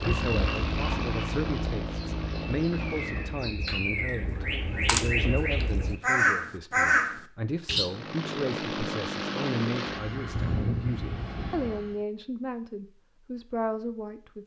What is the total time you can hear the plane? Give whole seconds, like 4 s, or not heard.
8 s.